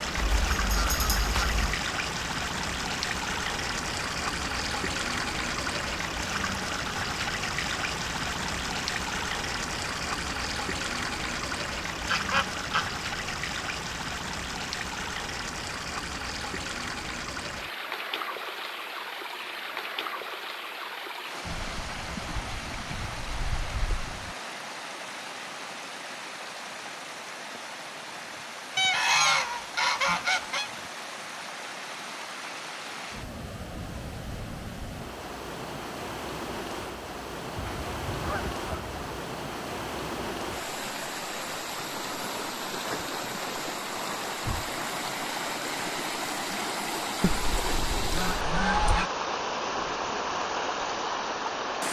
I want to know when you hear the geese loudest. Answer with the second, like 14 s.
29 s.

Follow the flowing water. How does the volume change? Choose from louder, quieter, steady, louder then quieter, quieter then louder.
quieter then louder.